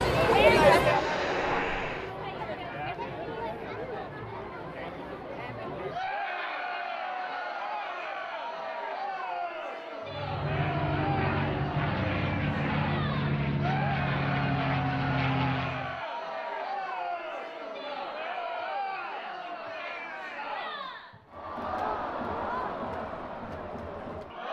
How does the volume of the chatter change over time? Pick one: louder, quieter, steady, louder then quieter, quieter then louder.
quieter.